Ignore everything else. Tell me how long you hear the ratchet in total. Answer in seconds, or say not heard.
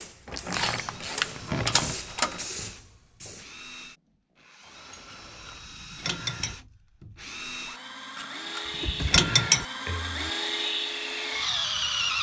5 s.